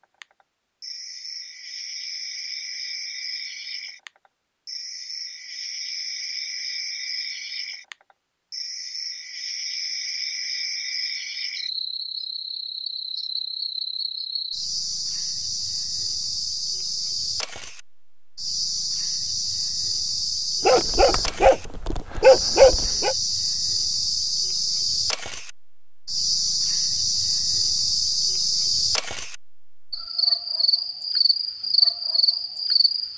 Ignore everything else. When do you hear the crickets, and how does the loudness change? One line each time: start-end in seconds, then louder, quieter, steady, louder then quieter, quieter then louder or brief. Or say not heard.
0.0-33.1 louder.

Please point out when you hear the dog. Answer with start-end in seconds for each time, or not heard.
20.6-23.1.